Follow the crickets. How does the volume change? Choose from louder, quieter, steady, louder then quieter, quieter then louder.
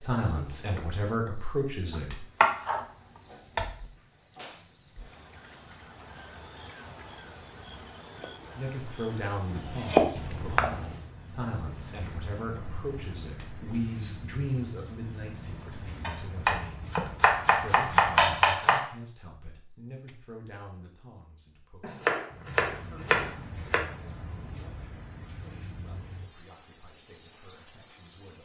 steady.